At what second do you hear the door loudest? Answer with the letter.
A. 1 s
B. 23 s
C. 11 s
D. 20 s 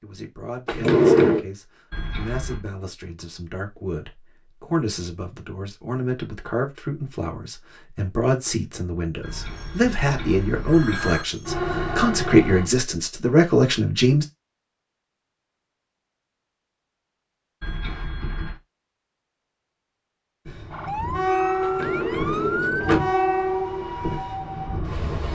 A.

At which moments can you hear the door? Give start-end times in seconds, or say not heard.
0.7-1.4, 21.6-23.1.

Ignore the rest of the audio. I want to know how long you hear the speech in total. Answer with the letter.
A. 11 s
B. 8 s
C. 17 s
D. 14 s
D.